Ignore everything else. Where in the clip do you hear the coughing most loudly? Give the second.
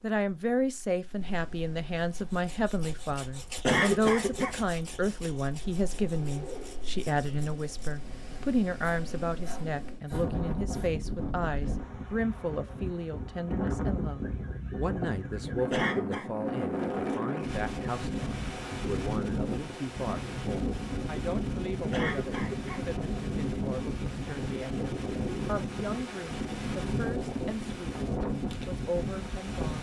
4 s.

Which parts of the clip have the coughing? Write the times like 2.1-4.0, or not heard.
3.6-4.6, 15.7-16.3, 21.9-22.9.